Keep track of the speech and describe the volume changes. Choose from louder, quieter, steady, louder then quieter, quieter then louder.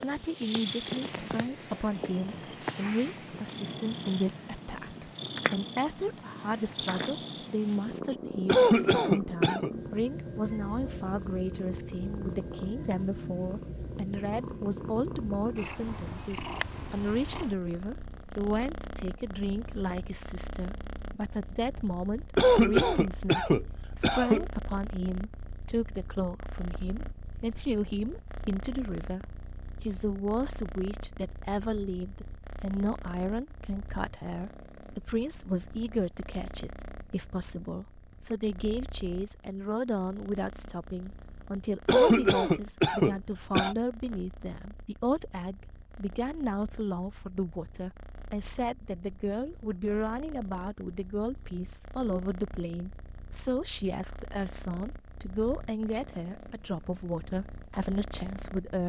steady.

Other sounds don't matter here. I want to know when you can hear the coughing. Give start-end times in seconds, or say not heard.
8.4-9.7, 22.4-24.4, 41.9-43.8.